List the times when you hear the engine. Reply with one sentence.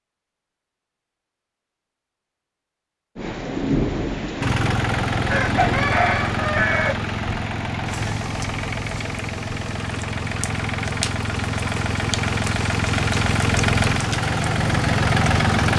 The engine can be heard from 4.4 to 15.7 s.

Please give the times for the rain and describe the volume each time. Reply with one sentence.
You can hear the rain from 3.1 to 15.7 s, getting quieter then louder.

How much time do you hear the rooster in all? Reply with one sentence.
You can hear the rooster for 2 seconds altogether.